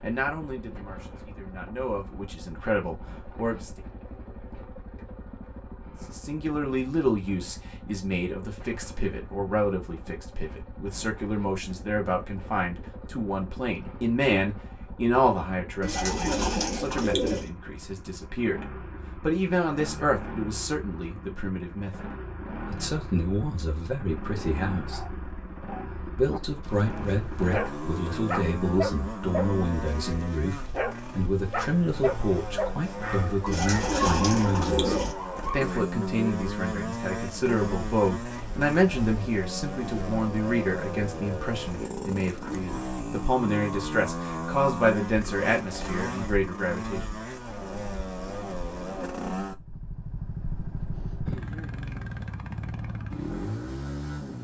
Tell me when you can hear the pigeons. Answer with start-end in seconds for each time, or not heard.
15.8-17.5, 33.5-35.1.